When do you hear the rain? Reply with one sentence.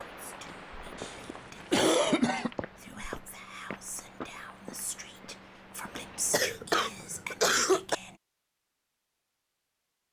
You can hear the rain from 0.0 to 6.4 s.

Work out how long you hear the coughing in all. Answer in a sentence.
The coughing can be heard for 3 seconds in total.